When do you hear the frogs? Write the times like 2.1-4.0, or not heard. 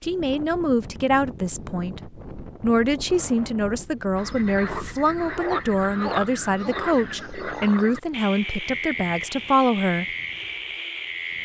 4.2-11.4.